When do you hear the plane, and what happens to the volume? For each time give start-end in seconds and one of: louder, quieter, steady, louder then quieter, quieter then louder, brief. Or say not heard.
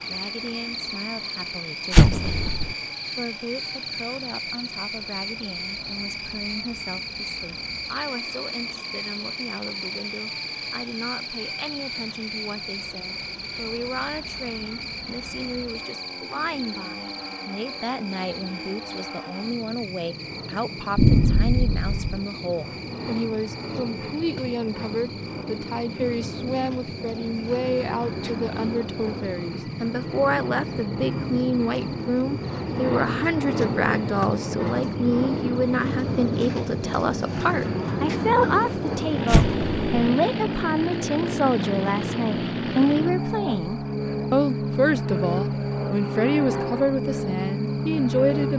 0.0-48.5 louder.